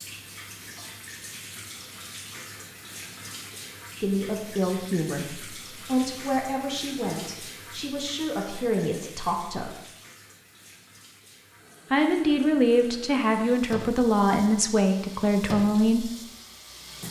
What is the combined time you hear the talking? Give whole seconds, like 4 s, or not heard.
10 s.